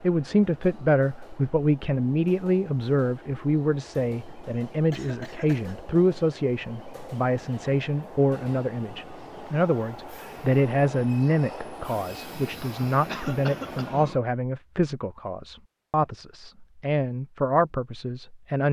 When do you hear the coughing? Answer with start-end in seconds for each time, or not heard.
4.9-5.8, 13.1-14.0.